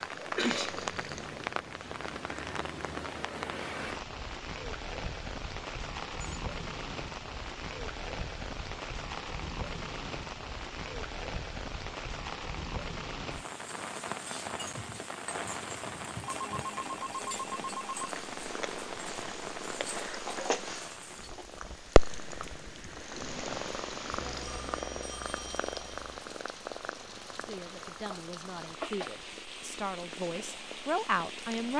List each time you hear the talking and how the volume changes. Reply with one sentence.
You can hear the talking from 27.4 to 31.7 s, getting louder.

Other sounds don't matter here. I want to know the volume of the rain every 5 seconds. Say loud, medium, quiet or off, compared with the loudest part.
loud, loud, loud, loud, medium, medium, medium.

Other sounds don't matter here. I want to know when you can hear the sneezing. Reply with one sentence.
You can hear the sneezing from 0.3 to 0.8 s.